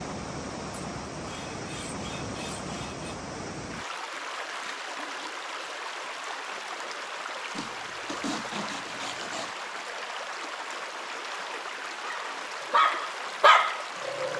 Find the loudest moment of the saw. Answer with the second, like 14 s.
8 s.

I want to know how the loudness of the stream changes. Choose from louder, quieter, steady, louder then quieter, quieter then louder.
steady.